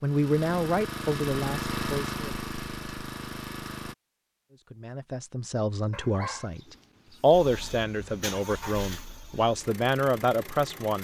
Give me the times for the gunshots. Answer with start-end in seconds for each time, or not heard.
not heard.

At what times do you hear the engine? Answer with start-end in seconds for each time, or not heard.
0.0-4.0, 7.3-10.9.